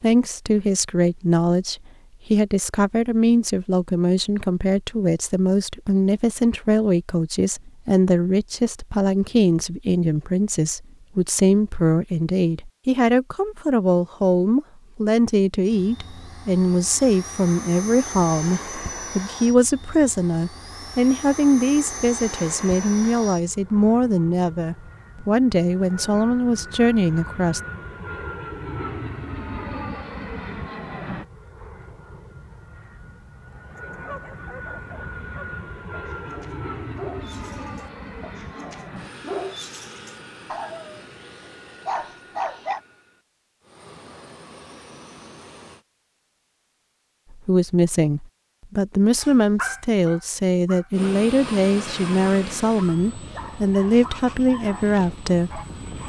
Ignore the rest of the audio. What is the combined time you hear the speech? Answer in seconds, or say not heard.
36 s.